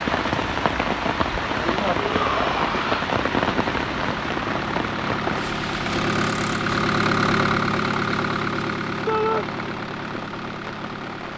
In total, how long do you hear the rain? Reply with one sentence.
You can hear the rain for 11 seconds altogether.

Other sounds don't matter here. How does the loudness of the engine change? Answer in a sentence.
The volume of the engine goes up, then down.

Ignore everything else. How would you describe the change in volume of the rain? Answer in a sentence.
The loudness of the rain goes down.